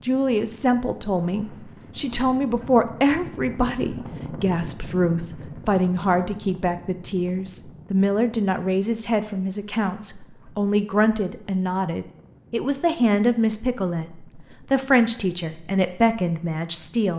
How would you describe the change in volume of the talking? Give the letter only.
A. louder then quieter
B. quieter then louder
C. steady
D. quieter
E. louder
C.